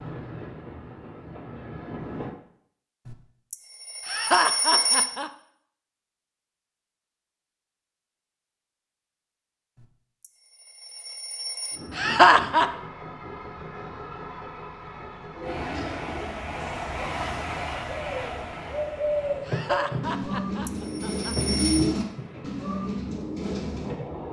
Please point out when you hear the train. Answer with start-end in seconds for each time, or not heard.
0.0-2.4, 11.7-24.2.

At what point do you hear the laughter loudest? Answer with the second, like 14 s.
12 s.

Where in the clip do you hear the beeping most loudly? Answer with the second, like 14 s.
5 s.